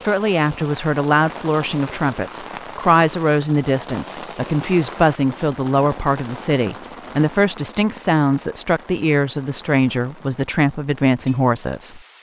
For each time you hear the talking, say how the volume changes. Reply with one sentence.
You can hear the talking from 0.1 to 12.0 s, at a steady volume.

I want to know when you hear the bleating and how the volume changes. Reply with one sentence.
The bleating can't be heard in this clip.